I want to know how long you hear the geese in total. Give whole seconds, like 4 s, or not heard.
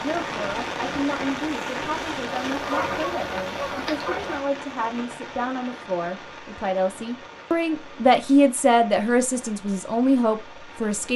2 s.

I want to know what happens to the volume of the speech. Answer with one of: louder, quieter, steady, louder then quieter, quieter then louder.
louder.